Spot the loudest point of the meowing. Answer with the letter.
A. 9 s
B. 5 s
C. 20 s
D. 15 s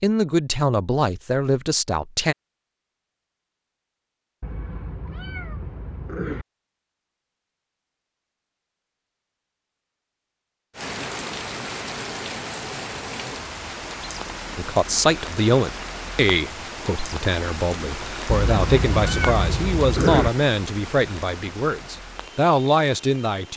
C.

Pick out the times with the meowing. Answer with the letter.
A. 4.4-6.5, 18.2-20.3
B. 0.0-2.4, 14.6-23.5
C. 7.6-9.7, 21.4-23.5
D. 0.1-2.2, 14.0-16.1
A.